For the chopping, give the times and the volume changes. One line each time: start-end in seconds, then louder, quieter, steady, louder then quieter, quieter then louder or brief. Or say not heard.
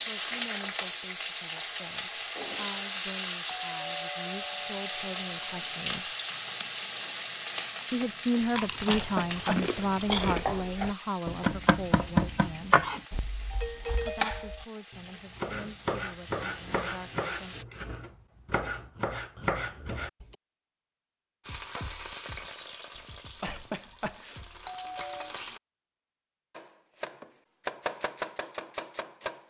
10.1-20.4 quieter
26.5-29.4 brief.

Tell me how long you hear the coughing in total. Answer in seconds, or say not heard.
3 s.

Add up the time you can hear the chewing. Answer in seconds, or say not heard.
6 s.